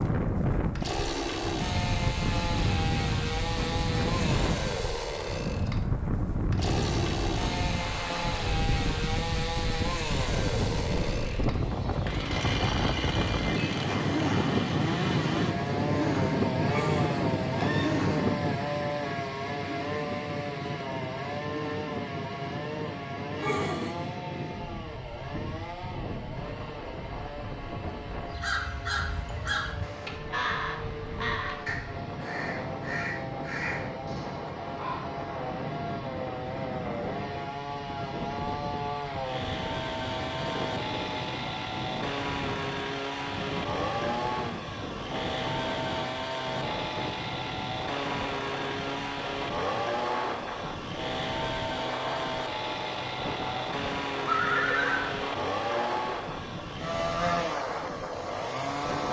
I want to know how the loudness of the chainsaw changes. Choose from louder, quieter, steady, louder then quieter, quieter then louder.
quieter then louder.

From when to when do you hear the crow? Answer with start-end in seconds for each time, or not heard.
28.2-35.0.